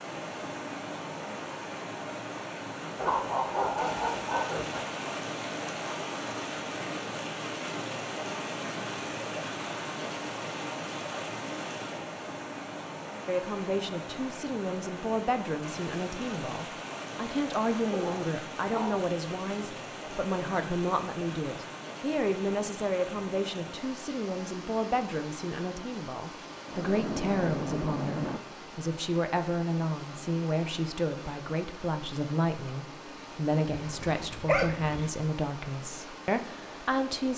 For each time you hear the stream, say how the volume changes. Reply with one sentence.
The stream can be heard from 0.0 to 37.3 s, getting quieter.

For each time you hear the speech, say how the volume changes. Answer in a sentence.
The speech can be heard from 13.2 to 37.3 s, at a steady volume.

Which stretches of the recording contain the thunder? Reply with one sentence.
You can hear the thunder from 26.6 to 28.4 s.